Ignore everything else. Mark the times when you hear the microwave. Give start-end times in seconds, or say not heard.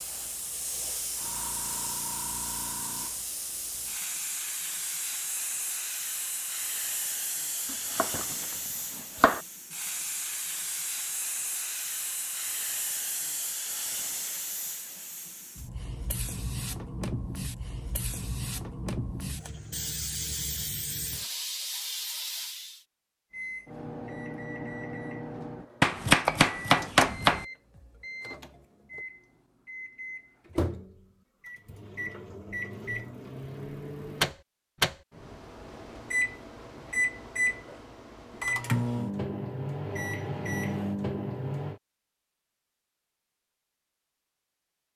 23.3-41.8.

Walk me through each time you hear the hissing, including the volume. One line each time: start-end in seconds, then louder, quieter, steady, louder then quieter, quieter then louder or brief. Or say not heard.
0.0-22.9 steady.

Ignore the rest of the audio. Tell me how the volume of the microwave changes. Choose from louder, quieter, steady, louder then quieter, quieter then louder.
louder.